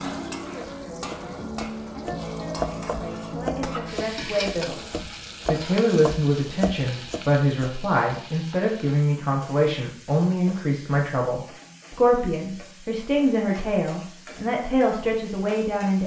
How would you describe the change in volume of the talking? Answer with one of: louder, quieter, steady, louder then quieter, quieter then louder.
louder.